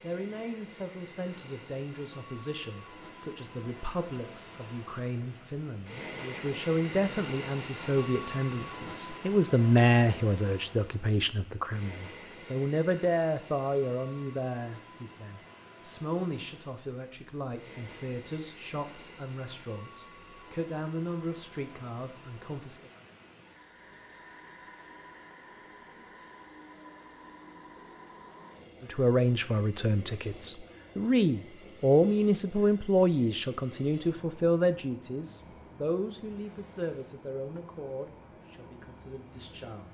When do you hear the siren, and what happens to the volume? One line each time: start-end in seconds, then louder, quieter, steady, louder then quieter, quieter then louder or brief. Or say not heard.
not heard.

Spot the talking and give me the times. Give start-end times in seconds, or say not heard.
0.0-22.9, 28.8-39.8.